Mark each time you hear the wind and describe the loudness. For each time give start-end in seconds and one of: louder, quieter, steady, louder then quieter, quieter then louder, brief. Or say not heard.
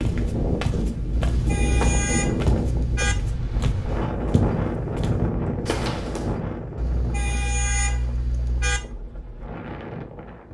0.0-10.5 quieter.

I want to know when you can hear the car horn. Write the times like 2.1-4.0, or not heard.
1.3-3.1, 6.8-8.8.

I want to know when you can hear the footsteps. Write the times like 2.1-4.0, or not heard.
0.0-6.3.